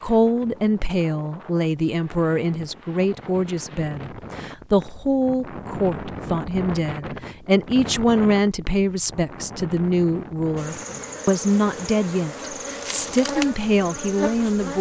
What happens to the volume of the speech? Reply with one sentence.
The loudness of the speech stays about the same.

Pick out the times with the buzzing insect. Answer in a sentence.
You can hear the buzzing insect from 10.6 to 14.7 s.